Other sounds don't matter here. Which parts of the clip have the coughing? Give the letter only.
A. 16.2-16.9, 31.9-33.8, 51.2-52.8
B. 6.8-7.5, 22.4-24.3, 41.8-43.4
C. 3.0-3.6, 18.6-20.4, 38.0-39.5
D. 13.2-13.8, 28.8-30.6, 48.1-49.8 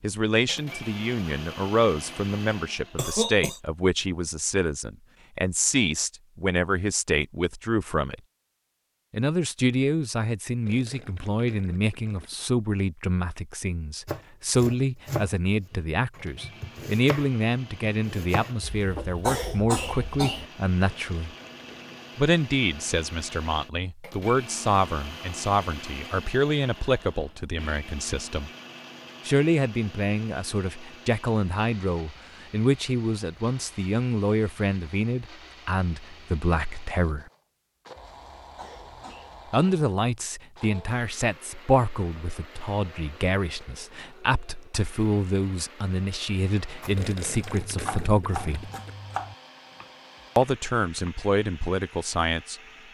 C.